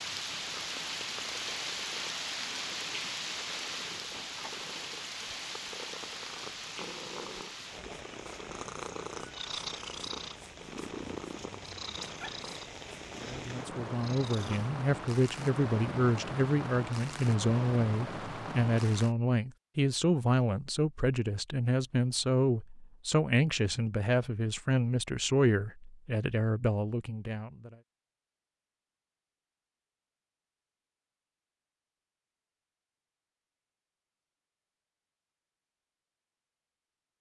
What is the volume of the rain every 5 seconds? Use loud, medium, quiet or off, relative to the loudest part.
loud, medium, medium, loud, off, off, off, off.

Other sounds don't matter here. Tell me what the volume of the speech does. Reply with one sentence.
The loudness of the speech stays about the same.